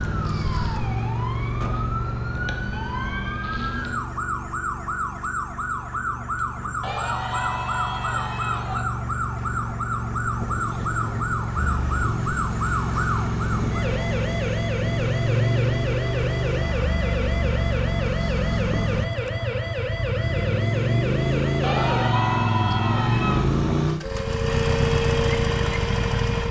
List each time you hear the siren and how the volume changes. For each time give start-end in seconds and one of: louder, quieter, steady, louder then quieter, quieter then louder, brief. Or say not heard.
0.0-22.1 steady
24.0-26.4 brief.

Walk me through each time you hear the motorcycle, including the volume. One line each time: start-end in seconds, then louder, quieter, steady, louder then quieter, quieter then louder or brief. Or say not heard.
0.0-26.4 louder.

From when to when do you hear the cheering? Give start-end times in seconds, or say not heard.
6.8-8.8, 21.6-23.5.